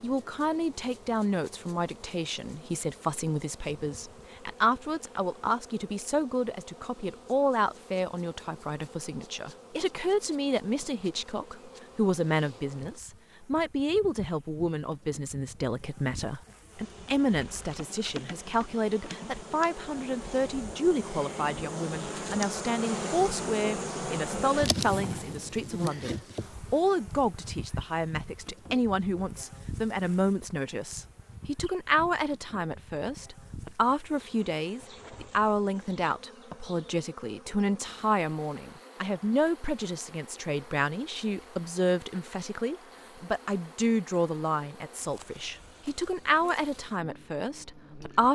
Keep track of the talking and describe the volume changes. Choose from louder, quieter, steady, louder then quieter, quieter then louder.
steady.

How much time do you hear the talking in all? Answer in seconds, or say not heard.
48 s.